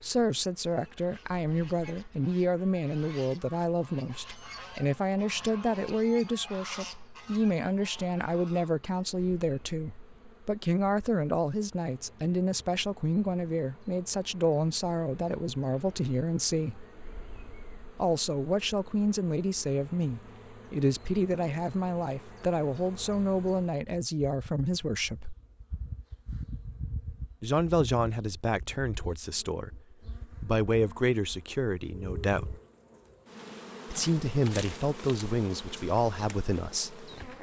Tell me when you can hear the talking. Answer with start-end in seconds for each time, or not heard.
0.0-16.9, 17.9-25.4, 27.4-29.8, 30.4-32.5, 33.9-37.0.